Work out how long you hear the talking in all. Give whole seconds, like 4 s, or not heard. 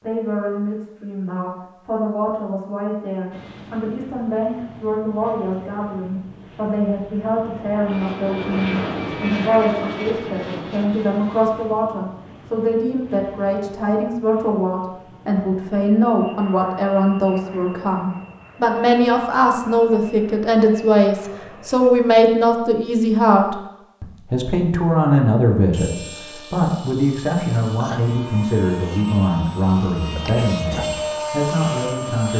32 s.